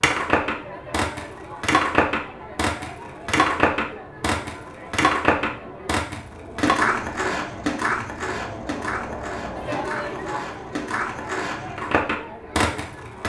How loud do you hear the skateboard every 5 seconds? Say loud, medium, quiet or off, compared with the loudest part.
loud, loud, medium.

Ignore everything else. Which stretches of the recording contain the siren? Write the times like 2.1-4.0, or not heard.
not heard.